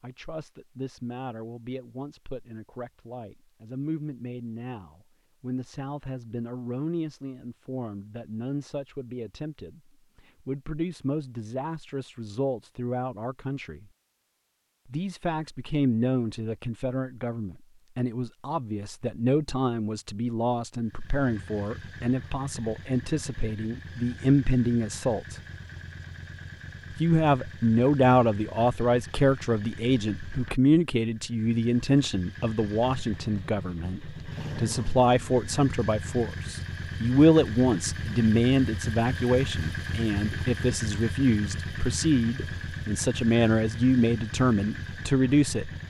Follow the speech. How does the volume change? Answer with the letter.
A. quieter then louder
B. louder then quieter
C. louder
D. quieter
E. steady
C.